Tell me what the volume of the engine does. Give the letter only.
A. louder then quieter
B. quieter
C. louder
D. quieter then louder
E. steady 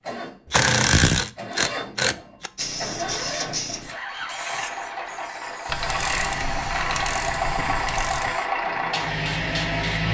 C.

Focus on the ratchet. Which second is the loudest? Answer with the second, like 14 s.
1 s.